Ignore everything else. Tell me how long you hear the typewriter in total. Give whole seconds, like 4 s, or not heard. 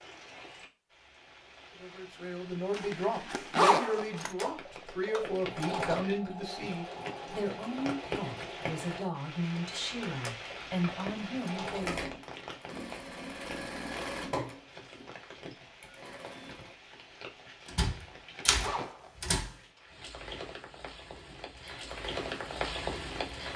2 s.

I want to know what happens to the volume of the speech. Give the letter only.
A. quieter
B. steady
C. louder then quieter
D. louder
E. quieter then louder
B.